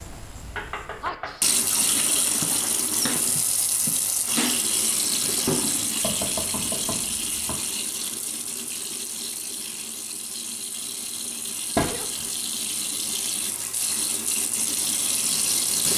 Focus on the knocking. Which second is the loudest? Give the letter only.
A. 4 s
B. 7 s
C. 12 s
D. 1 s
C.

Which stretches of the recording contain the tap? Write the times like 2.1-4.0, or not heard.
0.0-15.9.